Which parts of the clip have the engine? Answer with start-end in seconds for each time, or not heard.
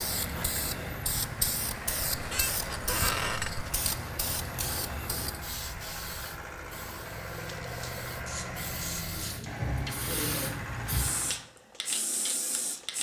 0.0-11.4.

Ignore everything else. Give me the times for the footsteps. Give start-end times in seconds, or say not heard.
not heard.